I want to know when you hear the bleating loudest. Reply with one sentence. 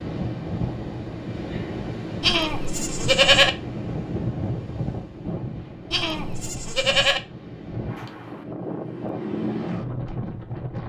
The volume of the bleating peaks at 3 seconds.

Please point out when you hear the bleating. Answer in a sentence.
You can hear the bleating from 2.2 to 3.5 s and from 5.9 to 7.2 s.